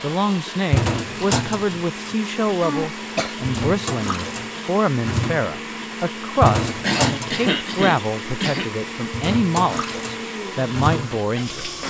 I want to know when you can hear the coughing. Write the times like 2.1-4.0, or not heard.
2.6-3.4, 6.8-8.7.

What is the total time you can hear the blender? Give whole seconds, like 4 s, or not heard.
12 s.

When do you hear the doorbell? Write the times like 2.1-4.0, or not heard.
not heard.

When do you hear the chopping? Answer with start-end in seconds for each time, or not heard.
not heard.